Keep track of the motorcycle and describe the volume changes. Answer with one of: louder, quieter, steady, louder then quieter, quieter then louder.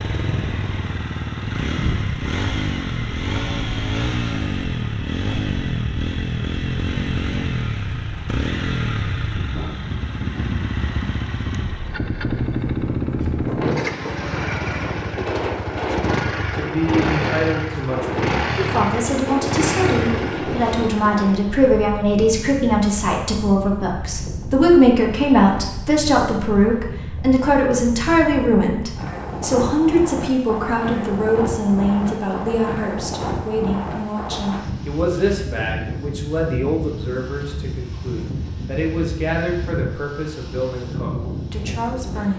steady.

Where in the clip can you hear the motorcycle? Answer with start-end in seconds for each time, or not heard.
0.0-21.2.